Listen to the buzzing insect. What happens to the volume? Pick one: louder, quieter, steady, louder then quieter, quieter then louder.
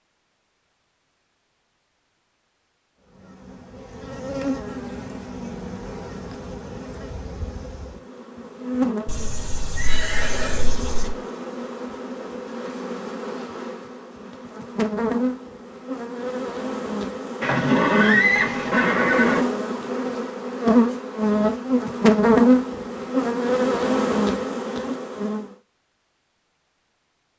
louder.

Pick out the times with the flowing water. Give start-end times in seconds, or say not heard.
not heard.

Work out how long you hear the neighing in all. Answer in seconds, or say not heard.
4 s.